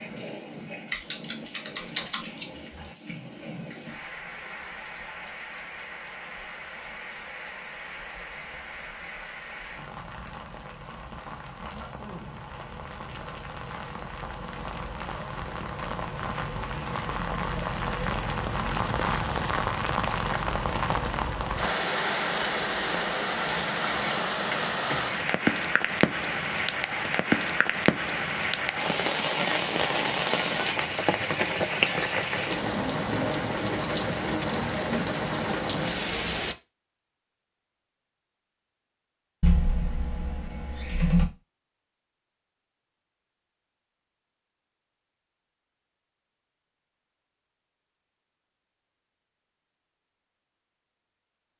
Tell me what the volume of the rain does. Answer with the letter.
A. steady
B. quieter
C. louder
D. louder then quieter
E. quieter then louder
C.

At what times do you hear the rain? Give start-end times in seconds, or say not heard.
0.0-36.5.